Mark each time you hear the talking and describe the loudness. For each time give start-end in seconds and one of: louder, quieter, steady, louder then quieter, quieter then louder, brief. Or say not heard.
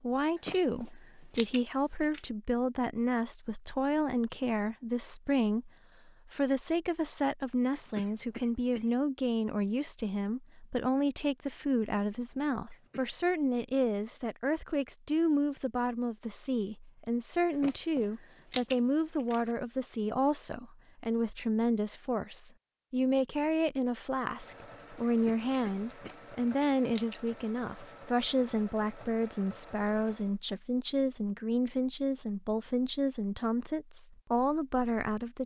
0.0-35.4 steady.